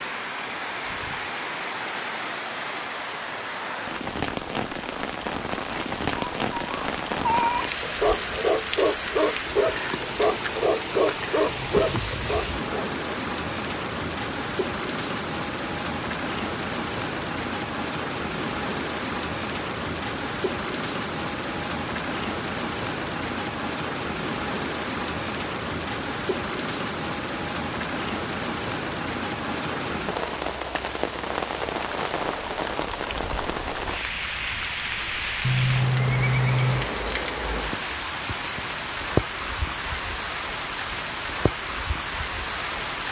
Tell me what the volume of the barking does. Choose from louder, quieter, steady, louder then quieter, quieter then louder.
steady.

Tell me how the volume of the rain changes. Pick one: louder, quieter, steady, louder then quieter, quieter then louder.
steady.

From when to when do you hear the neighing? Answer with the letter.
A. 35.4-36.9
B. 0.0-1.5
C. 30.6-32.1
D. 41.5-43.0
A.